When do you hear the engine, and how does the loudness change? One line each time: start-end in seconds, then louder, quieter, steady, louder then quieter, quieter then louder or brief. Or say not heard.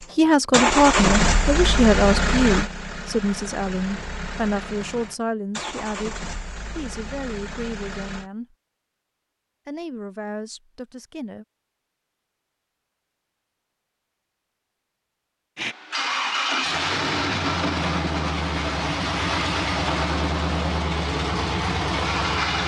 0.0-8.3 quieter
15.6-22.6 steady.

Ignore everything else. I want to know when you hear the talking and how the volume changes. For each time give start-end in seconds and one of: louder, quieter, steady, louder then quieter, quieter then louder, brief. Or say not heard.
0.1-8.6 quieter
9.7-11.4 brief.